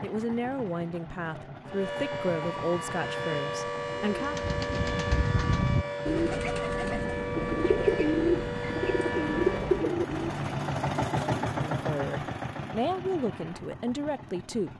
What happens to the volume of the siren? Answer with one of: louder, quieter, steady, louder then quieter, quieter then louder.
steady.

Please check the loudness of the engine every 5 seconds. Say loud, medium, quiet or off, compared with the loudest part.
medium, medium, loud.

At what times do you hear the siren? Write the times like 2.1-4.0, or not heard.
1.6-9.9.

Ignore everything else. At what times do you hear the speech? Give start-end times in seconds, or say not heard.
0.0-4.4, 11.7-14.7.